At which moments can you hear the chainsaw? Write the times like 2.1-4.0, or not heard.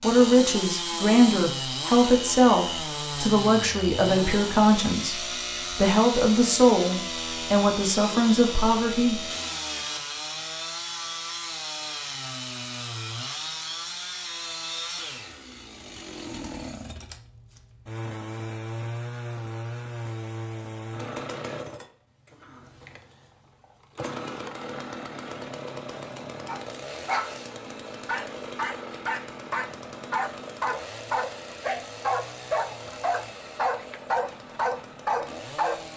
0.0-35.9.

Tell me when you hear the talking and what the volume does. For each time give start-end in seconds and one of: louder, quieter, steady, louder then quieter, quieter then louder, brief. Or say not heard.
0.0-9.3 steady.